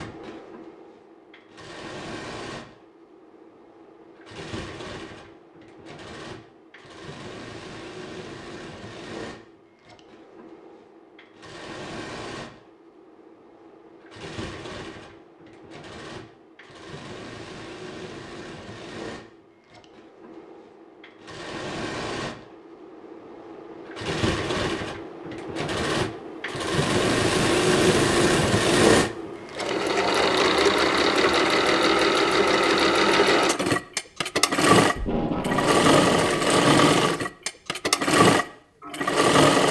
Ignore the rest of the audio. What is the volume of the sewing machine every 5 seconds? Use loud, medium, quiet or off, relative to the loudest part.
quiet, quiet, quiet, quiet, quiet, loud, loud, loud.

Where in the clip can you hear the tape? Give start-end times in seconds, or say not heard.
35.0-36.4.